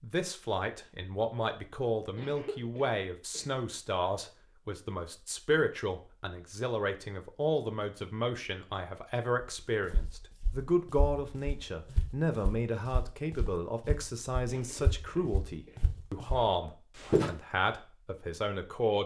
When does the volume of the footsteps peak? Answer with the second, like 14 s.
17 s.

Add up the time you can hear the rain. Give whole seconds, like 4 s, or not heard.
not heard.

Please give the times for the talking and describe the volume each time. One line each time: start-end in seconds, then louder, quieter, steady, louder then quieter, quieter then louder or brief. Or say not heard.
0.0-19.0 steady.